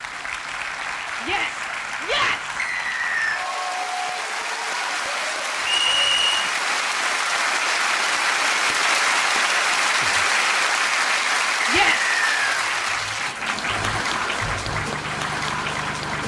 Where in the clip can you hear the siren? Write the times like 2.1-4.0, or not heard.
not heard.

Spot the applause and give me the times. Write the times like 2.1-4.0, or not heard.
0.0-16.2.